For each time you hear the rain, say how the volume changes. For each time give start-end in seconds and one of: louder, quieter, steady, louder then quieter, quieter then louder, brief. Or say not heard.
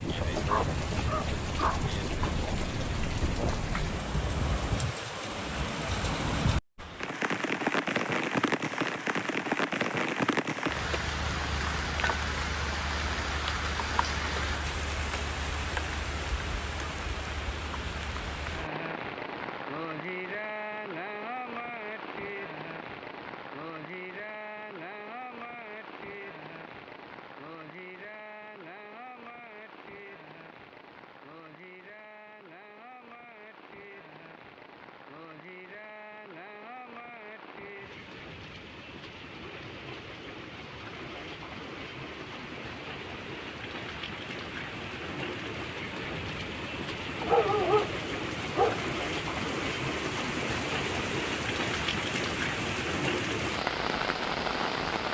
0.0-55.0 quieter then louder.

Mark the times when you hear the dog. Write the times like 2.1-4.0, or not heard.
0.4-1.9, 47.2-48.9.